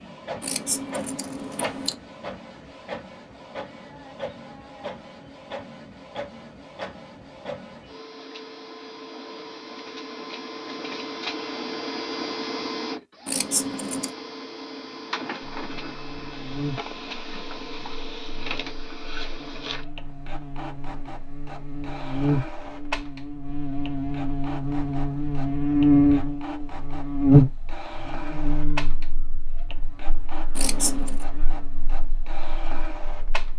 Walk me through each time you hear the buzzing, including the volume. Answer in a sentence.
You can hear the buzzing from 15.4 to 33.5 s, getting louder then quieter.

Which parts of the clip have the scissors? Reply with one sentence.
The scissors can be heard from 0.4 to 1.9 s, from 13.2 to 14.1 s and from 30.6 to 31.2 s.